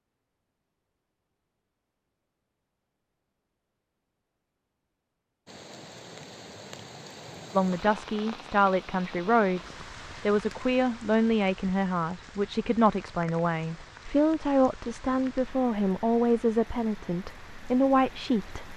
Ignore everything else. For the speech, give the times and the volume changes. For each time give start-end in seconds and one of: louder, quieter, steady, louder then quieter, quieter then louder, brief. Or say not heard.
7.5-18.7 steady.